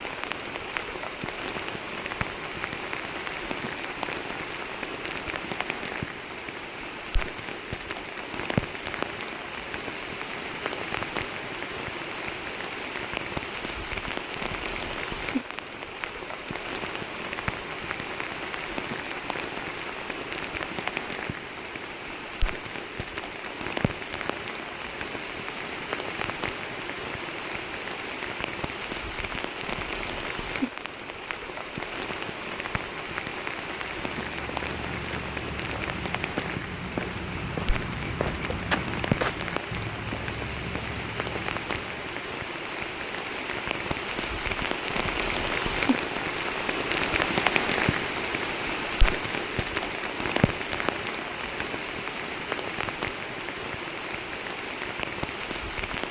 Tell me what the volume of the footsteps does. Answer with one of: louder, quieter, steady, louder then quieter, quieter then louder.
louder then quieter.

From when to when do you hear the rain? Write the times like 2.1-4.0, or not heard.
0.0-56.0.